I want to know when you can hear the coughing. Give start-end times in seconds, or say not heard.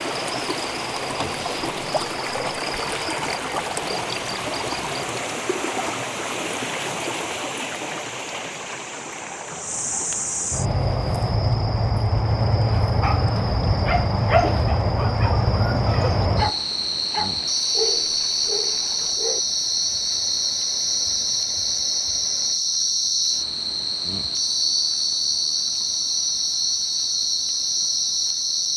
not heard.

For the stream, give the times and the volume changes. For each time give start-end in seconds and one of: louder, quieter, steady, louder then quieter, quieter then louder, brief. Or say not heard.
0.0-22.6 quieter.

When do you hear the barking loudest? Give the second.
14 s.